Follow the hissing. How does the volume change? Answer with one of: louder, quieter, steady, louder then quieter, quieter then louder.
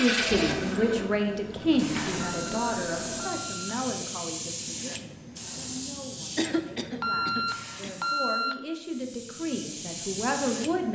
quieter then louder.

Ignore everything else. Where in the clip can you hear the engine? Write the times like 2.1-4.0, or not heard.
0.0-3.3.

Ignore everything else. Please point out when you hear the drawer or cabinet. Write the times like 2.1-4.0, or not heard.
not heard.